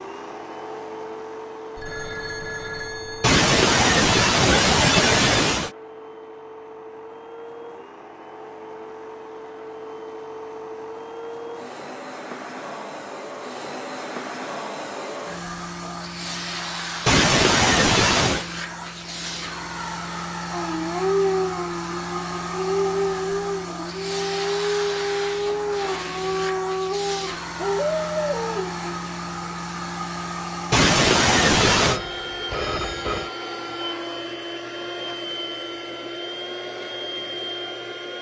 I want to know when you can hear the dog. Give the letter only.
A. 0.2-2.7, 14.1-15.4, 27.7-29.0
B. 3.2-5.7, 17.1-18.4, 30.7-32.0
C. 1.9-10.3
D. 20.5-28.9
D.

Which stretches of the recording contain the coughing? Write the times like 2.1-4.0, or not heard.
3.2-5.7, 17.1-18.4, 30.7-32.0.